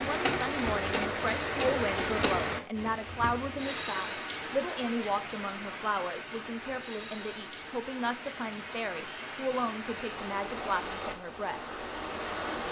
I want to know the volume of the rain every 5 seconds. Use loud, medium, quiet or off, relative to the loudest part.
loud, medium, loud.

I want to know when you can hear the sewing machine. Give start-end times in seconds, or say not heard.
0.0-2.5.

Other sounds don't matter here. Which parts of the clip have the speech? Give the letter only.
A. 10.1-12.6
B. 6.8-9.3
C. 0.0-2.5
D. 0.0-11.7
D.